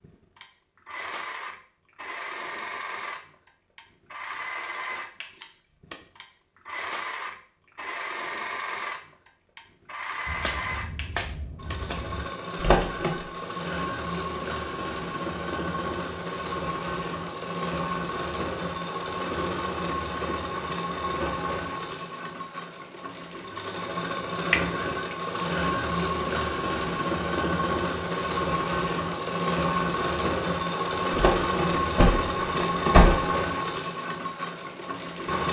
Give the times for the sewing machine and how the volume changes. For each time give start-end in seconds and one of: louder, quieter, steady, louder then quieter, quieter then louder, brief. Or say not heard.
0.0-35.4 louder.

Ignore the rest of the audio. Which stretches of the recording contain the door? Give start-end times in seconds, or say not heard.
12.6-13.1, 31.1-33.2.